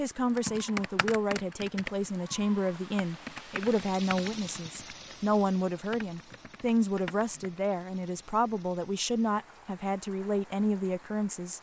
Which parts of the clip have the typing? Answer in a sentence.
You can hear the typing from 0.3 to 5.2 s and from 5.9 to 7.6 s.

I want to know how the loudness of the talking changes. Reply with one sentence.
The loudness of the talking stays about the same.